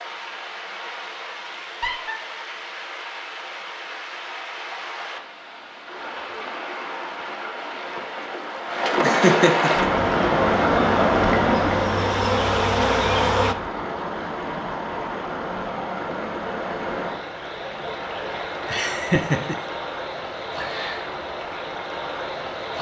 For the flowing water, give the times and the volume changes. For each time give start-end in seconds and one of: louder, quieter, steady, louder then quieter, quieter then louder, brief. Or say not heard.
0.0-22.7 louder then quieter.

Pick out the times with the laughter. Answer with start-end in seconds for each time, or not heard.
1.6-2.1, 8.9-9.9, 18.6-19.6.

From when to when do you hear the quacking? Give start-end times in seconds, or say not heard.
not heard.